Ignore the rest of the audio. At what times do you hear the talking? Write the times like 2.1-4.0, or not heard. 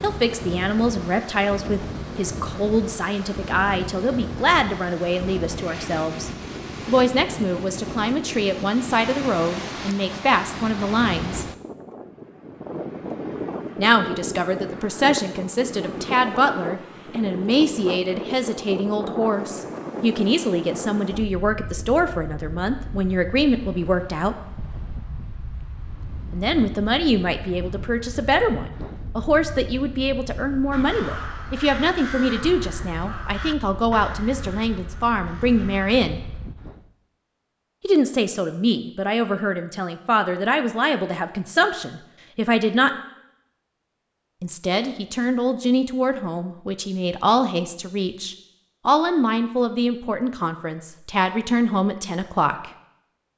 0.0-11.4, 13.8-24.4, 26.3-36.2, 37.8-42.9, 44.4-52.7.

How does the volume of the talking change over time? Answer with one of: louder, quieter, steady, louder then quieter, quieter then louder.
steady.